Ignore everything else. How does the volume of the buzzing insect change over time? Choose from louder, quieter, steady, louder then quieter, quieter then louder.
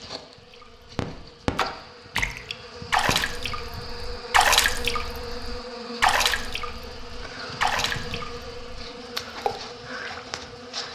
steady.